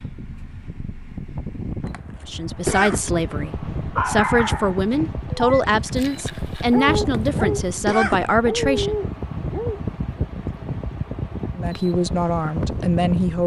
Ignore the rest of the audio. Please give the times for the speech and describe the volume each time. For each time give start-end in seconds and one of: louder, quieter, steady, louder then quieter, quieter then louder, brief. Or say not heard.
2.2-8.9 steady
11.6-13.4 brief.